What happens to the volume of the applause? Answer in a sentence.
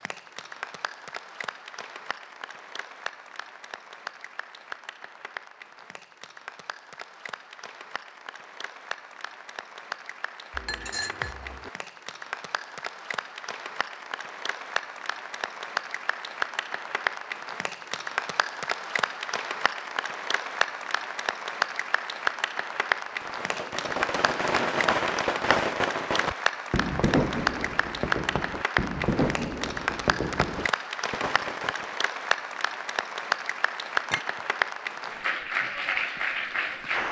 The volume of the applause goes up.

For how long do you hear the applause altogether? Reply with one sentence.
You can hear the applause for 37 seconds altogether.